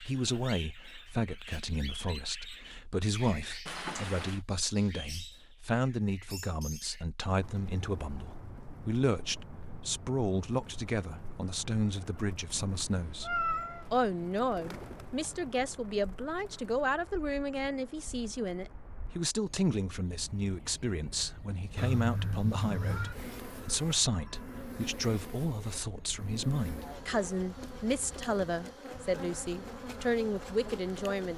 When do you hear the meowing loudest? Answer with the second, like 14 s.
13 s.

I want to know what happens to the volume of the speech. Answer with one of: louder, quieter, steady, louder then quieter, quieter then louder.
steady.